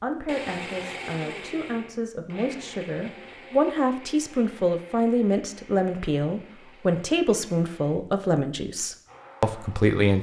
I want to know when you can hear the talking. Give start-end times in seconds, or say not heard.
0.0-10.1.